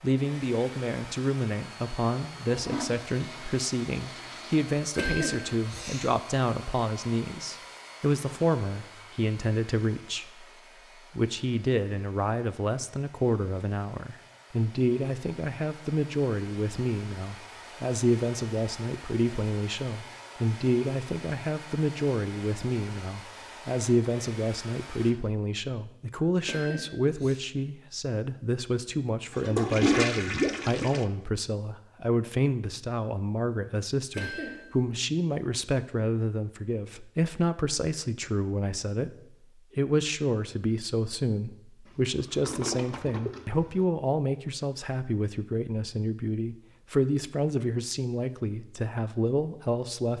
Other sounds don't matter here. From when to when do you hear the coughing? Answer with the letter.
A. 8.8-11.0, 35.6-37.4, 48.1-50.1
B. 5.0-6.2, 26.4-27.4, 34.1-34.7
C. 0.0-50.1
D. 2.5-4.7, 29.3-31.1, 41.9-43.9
B.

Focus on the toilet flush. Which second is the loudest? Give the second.
30 s.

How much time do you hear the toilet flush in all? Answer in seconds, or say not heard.
6 s.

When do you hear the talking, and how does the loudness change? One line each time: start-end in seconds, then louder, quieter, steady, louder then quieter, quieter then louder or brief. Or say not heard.
0.0-50.1 steady.